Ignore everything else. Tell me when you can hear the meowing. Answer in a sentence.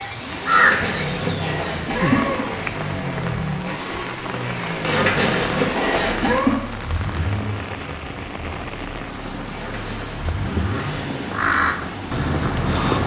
The meowing can be heard from 0.5 to 2.5 s, from 4.8 to 6.6 s and from 9.5 to 10.1 s.